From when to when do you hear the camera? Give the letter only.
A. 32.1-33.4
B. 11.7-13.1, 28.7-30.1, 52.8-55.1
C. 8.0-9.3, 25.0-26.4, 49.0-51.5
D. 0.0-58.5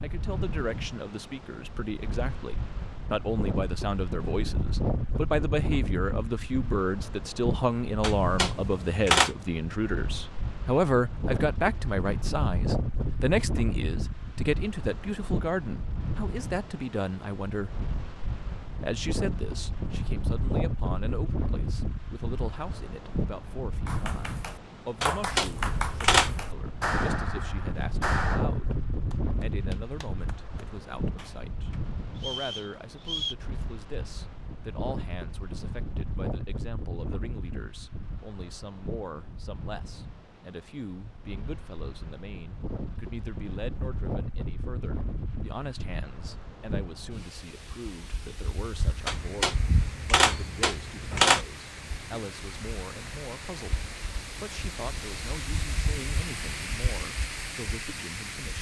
C.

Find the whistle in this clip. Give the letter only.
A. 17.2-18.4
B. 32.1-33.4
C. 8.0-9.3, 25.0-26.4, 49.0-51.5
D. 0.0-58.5
B.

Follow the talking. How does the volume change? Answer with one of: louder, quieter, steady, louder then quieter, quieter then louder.
quieter.